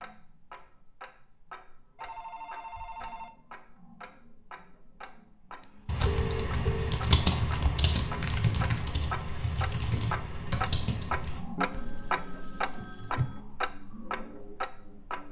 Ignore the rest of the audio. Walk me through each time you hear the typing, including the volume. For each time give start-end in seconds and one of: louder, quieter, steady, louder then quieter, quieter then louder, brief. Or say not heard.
5.8-12.2 quieter.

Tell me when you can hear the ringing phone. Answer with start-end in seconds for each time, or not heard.
1.9-3.4, 5.6-6.9, 11.6-13.4.